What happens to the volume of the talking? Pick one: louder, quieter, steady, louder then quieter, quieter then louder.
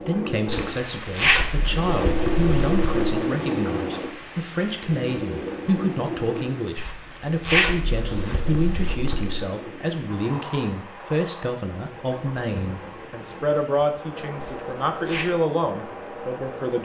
steady.